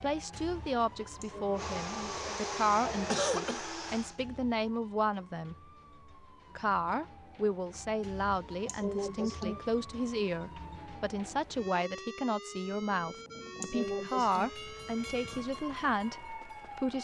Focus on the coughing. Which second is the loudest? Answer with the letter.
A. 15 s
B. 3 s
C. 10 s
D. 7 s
B.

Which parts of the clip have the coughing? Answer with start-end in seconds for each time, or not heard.
1.2-3.7, 8.7-9.6, 13.6-14.5.